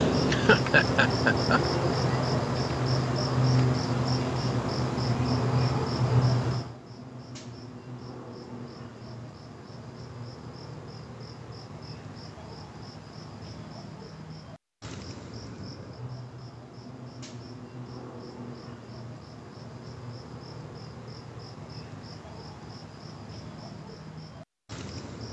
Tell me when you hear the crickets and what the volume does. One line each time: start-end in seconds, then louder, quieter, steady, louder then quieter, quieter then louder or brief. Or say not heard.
0.0-25.2 quieter.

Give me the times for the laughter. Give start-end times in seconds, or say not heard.
0.2-1.6.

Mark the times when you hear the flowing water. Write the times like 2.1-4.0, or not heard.
not heard.